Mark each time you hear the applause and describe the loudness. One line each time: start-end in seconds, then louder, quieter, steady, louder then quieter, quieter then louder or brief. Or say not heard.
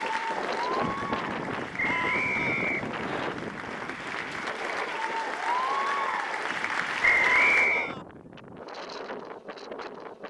0.0-7.7 quieter then louder.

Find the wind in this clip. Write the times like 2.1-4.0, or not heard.
0.0-10.2.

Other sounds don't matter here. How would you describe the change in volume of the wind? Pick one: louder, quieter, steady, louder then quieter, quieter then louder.
quieter.